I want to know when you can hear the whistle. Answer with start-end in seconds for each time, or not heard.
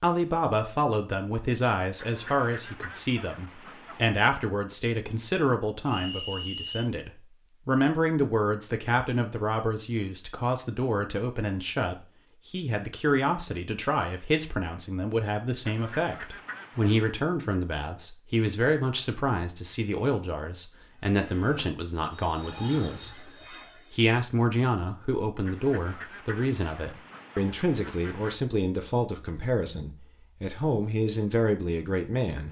5.8-6.9.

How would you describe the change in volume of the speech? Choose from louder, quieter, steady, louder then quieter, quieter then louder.
steady.